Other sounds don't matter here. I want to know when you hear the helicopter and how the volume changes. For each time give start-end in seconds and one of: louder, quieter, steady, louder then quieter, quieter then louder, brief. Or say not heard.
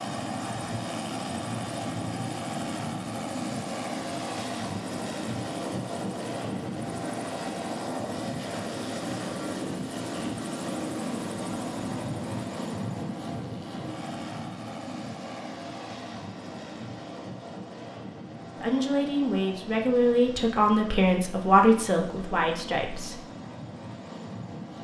0.0-24.7 quieter.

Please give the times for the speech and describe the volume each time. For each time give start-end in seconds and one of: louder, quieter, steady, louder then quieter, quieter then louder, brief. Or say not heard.
18.6-23.2 louder then quieter.